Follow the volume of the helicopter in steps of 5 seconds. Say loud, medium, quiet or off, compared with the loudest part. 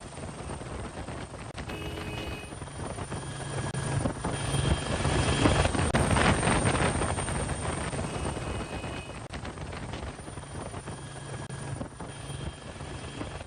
medium, loud, medium.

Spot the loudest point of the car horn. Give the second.
2 s.